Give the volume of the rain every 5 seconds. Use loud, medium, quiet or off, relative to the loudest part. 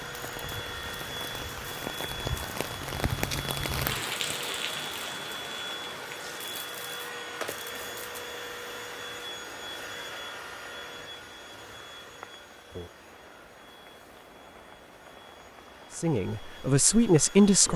loud, medium, quiet, quiet.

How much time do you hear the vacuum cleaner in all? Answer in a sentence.
You can hear the vacuum cleaner for 18 seconds altogether.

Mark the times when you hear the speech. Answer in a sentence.
The speech can be heard from 15.9 to 17.7 s.